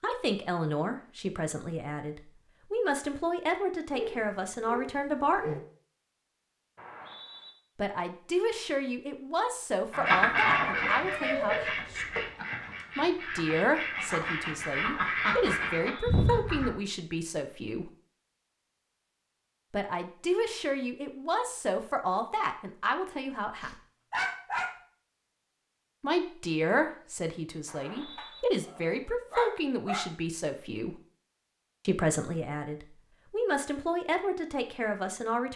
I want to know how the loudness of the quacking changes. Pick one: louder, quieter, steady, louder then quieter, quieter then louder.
quieter then louder.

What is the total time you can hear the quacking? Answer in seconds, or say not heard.
7 s.